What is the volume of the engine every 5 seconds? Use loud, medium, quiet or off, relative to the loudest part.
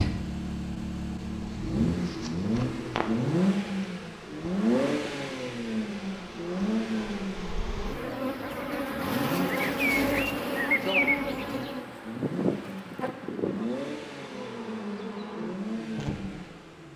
loud, medium, medium, medium.